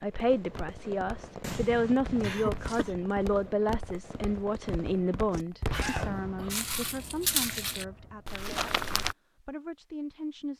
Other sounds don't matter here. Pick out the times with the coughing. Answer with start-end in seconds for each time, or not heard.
2.2-3.0, 5.7-6.7.